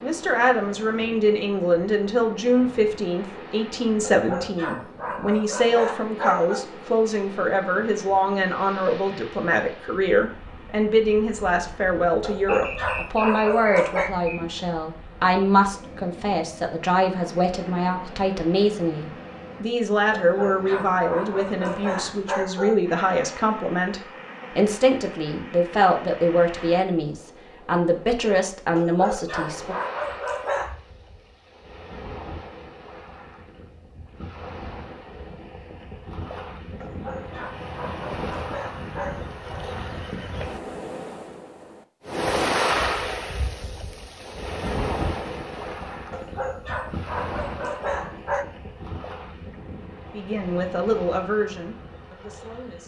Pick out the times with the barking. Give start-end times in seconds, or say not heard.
4.1-6.7, 12.2-14.1, 20.1-22.8, 28.8-30.8, 36.8-39.3, 46.1-48.5.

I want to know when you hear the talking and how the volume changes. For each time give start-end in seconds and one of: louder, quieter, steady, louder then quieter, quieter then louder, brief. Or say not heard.
0.0-29.8 steady
50.1-52.8 brief.